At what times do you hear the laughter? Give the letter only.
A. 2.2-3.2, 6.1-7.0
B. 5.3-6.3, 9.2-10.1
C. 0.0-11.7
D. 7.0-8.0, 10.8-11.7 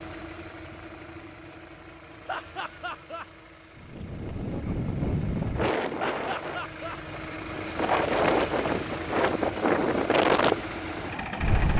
A.